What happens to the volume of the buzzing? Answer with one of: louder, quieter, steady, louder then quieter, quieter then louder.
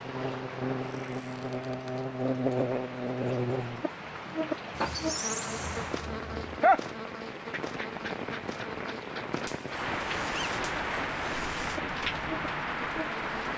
quieter.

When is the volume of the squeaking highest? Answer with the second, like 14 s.
5 s.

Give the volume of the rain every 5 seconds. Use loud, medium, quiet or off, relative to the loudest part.
medium, loud, loud.